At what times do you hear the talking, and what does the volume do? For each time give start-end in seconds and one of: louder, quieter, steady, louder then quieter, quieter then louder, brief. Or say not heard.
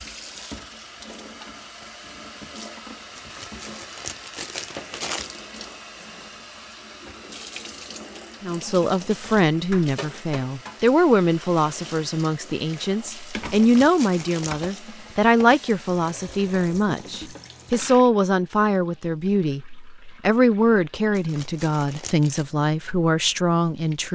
8.4-24.0 steady.